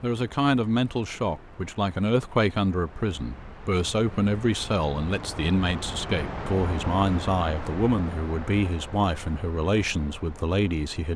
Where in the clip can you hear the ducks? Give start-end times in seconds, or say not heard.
not heard.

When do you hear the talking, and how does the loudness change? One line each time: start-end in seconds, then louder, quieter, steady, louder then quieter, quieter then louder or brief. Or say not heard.
0.0-11.1 steady.